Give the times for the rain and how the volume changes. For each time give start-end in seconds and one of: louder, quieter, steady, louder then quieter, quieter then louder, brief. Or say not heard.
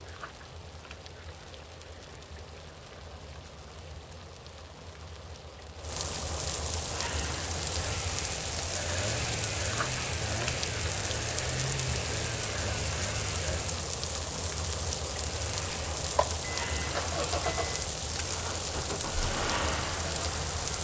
0.0-20.7 louder.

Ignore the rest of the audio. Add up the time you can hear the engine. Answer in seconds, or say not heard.
12 s.